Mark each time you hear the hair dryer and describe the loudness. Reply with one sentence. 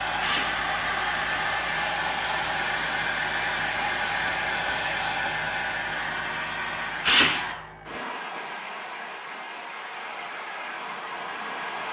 The hair dryer can be heard from 0.0 to 11.8 s, getting quieter.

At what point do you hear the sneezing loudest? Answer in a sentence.
The loudest moment of the sneezing is at 7 seconds.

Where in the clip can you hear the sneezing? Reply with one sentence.
You can hear the sneezing from 0.1 to 0.7 s and from 7.0 to 7.5 s.